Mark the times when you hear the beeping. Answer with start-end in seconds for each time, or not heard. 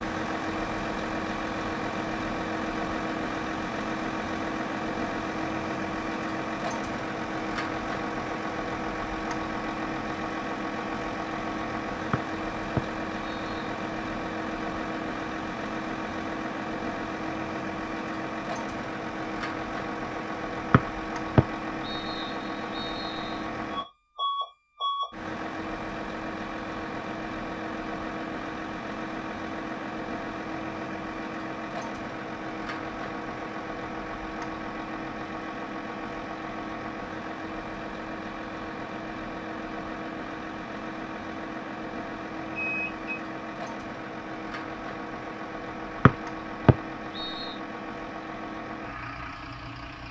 42.5-43.2.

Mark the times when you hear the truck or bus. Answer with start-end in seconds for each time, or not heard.
0.0-50.0.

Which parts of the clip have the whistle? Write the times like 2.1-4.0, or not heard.
12.1-13.5, 20.7-23.4, 46.0-47.6.